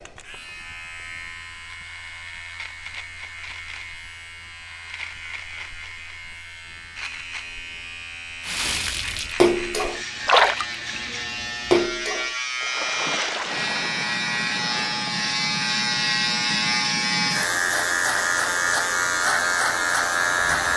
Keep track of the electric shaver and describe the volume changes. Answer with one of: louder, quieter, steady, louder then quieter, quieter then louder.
louder.